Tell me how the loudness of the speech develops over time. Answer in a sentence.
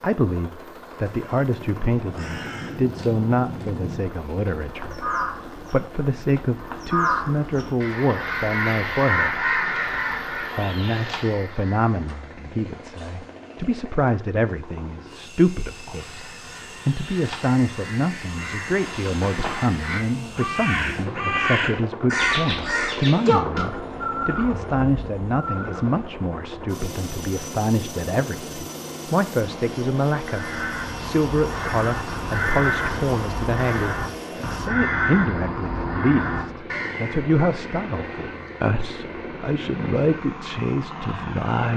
The volume of the speech stays about the same.